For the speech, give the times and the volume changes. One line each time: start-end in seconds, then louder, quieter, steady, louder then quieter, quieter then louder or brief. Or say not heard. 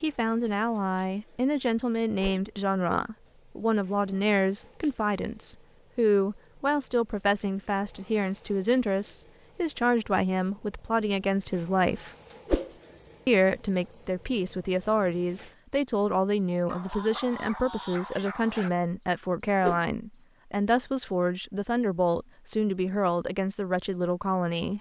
0.0-12.1 steady
13.2-24.7 steady.